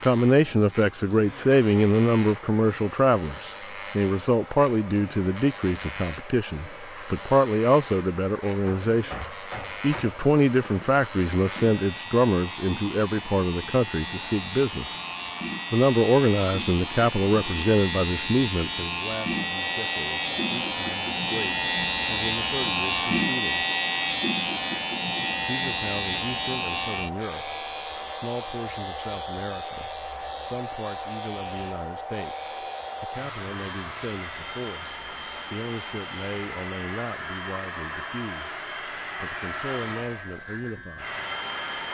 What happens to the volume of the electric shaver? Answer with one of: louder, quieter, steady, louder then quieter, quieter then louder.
louder then quieter.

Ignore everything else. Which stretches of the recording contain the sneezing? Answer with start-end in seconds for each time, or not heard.
not heard.